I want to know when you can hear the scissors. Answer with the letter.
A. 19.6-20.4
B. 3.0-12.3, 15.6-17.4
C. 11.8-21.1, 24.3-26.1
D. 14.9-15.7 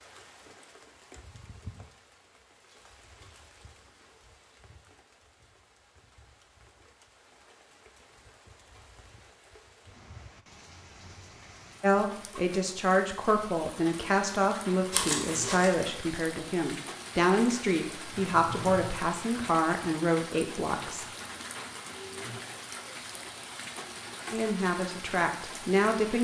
D.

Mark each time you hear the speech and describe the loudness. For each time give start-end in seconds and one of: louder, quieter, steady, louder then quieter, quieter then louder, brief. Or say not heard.
11.8-21.1 steady
24.3-26.1 brief.